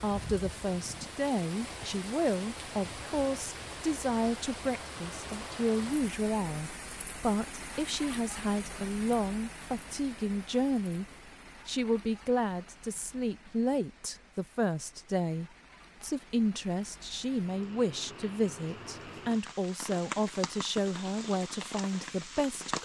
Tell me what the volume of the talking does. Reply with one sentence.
The volume of the talking stays about the same.